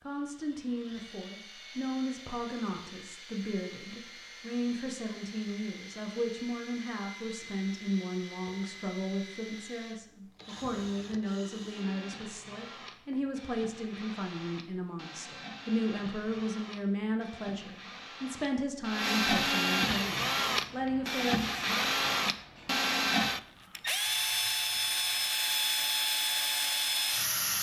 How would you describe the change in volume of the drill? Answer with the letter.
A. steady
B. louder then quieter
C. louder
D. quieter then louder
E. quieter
C.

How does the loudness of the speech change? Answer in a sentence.
The volume of the speech stays about the same.